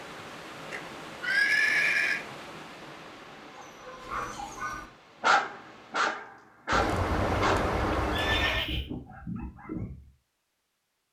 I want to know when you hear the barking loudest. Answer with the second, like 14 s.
5 s.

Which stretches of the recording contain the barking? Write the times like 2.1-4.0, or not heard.
3.5-9.9.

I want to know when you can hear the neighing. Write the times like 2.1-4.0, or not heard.
0.7-2.2, 6.7-8.7.